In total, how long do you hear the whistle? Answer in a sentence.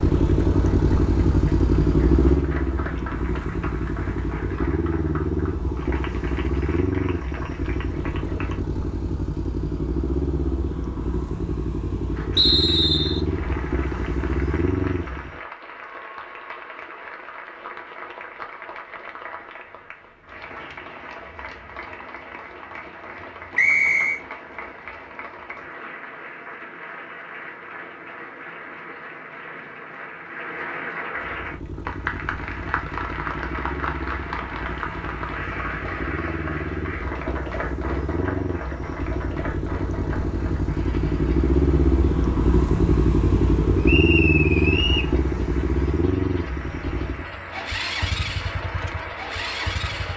You can hear the whistle for 3 seconds altogether.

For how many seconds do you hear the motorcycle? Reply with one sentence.
You can hear the motorcycle for 34 seconds altogether.